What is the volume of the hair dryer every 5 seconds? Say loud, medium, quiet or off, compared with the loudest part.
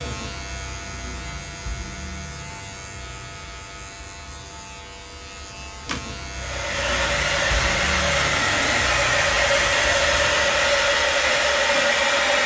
off, loud, loud.